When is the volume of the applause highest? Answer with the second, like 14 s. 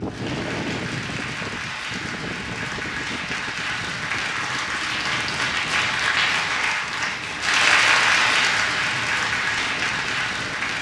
8 s.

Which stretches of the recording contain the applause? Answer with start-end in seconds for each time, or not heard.
0.0-10.7.